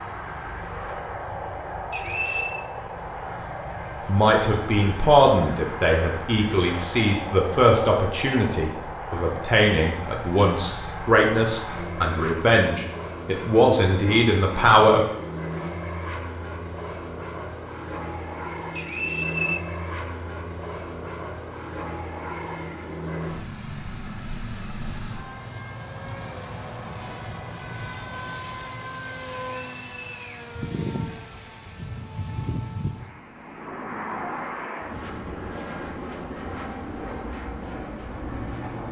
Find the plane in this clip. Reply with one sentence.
You can hear the plane from 0.0 to 38.8 s.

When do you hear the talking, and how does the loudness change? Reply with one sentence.
You can hear the talking from 4.0 to 15.1 s, at a steady volume.